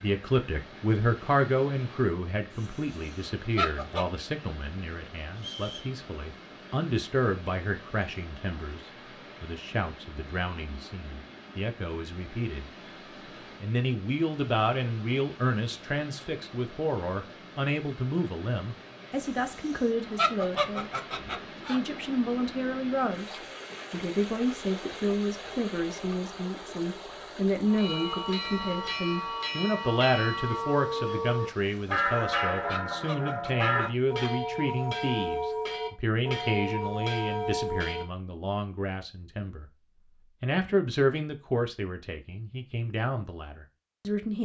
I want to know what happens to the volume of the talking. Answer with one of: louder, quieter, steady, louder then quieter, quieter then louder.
steady.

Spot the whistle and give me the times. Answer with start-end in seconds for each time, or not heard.
5.3-6.0.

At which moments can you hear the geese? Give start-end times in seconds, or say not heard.
2.5-4.0, 19.1-21.8, 31.6-34.4.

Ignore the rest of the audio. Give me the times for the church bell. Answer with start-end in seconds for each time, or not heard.
27.6-38.0.